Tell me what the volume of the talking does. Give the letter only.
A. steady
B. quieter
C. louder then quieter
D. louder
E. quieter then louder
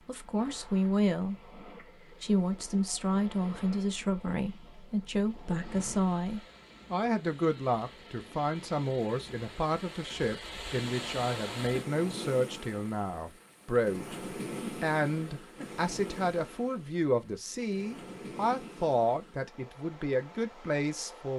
A.